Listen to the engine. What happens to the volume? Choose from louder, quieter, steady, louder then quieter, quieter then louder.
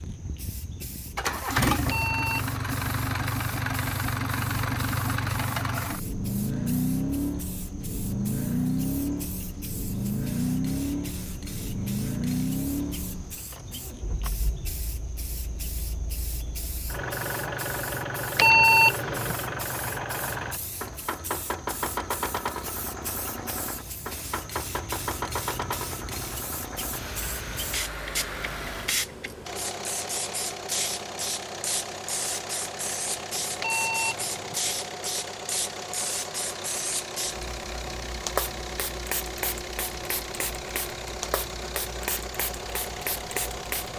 quieter.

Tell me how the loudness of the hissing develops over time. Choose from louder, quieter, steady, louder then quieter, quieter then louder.
louder.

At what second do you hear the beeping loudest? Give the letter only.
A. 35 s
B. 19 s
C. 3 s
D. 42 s
B.